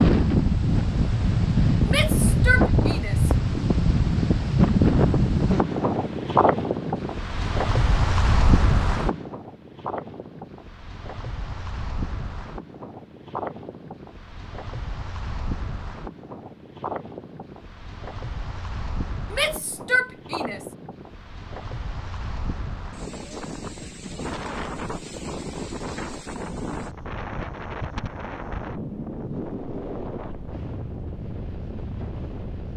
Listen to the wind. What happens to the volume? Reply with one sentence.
The loudness of the wind goes down.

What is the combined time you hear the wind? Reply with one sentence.
You can hear the wind for 33 seconds altogether.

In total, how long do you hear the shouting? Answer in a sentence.
You can hear the shouting for 3 seconds altogether.